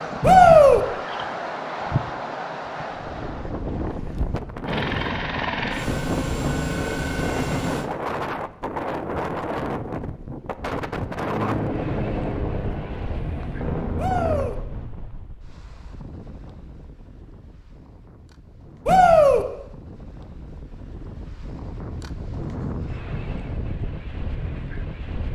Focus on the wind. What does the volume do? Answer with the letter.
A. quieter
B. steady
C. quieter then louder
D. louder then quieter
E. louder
C.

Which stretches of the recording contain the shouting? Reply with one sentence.
You can hear the shouting from 0.2 to 0.8 s, from 13.9 to 14.6 s and from 18.9 to 19.4 s.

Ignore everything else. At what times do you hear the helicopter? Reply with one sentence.
The helicopter can be heard from 4.7 to 7.9 s and from 11.1 to 14.5 s.